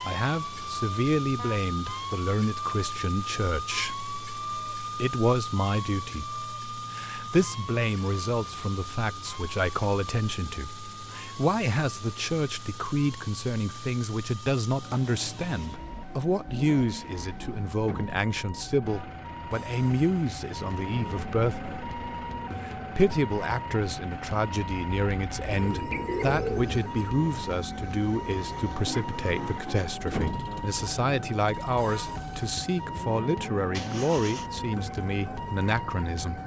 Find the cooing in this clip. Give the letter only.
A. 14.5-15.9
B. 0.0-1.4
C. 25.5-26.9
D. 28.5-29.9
C.